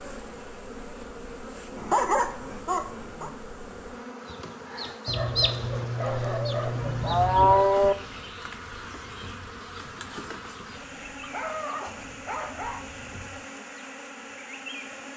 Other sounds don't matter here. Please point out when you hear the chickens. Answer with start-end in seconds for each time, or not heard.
4.2-13.4.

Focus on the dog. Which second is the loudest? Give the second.
2 s.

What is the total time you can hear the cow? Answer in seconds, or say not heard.
2 s.